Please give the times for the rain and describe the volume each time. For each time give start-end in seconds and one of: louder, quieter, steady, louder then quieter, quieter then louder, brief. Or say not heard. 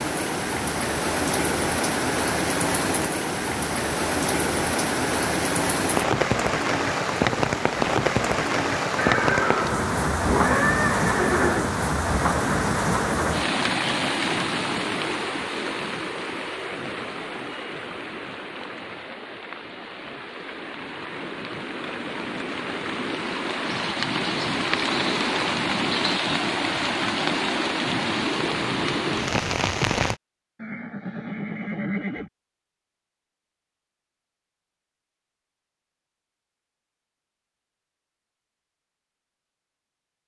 0.0-30.1 quieter then louder.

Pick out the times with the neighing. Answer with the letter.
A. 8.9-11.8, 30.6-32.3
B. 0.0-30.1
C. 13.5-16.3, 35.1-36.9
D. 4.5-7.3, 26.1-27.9
A.